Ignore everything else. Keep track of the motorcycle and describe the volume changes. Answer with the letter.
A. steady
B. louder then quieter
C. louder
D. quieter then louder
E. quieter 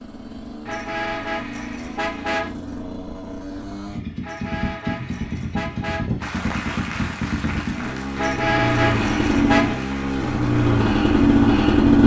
C.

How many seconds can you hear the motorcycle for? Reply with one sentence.
The motorcycle can be heard for 12 seconds in total.